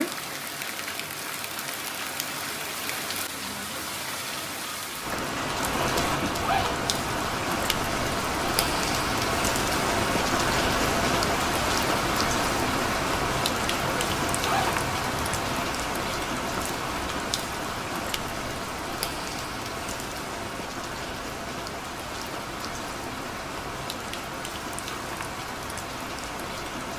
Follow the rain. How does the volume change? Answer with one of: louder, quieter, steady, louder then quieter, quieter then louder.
louder then quieter.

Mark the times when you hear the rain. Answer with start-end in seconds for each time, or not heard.
0.0-26.9.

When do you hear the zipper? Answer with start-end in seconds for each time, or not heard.
5.8-7.3, 13.8-15.7.